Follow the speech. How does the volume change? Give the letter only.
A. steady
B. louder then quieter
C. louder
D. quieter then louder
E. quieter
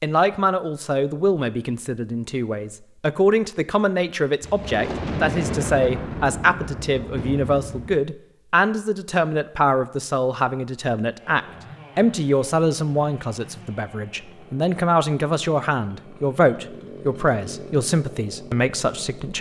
A.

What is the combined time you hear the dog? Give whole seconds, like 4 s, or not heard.
not heard.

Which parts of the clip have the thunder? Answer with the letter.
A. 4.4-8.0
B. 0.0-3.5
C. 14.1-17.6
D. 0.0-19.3
A.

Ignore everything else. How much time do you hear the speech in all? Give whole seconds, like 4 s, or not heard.
19 s.